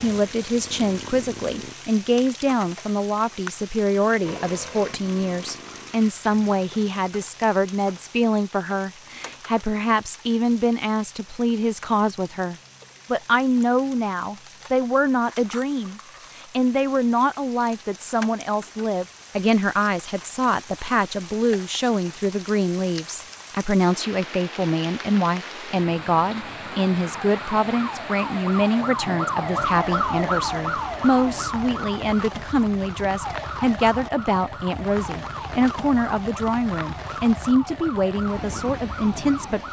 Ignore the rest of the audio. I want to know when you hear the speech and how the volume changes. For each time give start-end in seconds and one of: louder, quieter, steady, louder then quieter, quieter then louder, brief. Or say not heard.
0.0-39.6 steady.